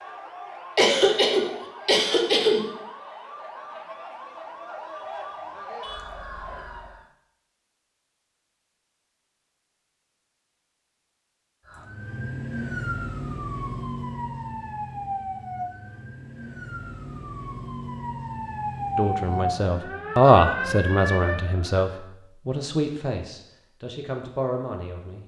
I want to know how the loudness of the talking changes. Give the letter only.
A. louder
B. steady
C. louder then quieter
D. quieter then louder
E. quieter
E.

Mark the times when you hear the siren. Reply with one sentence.
The siren can be heard from 0.0 to 7.0 s and from 11.7 to 22.0 s.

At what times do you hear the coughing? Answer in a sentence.
The coughing can be heard from 0.8 to 2.6 s.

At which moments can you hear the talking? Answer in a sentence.
You can hear the talking from 18.9 to 25.2 s.